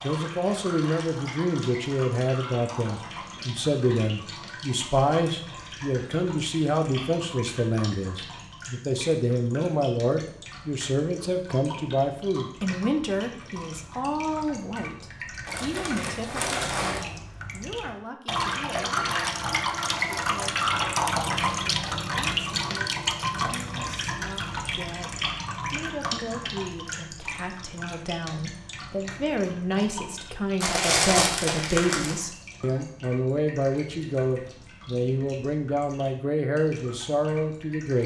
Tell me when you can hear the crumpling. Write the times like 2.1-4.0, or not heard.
15.4-17.0, 30.6-32.2.